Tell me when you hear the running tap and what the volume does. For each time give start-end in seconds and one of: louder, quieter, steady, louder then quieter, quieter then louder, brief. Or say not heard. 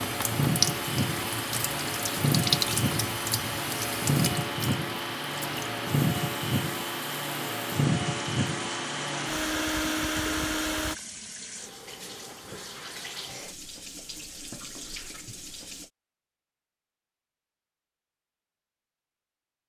0.0-15.9 quieter.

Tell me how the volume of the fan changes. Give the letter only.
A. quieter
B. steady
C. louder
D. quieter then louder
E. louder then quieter
B.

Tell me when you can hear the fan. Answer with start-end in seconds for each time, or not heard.
0.0-10.9.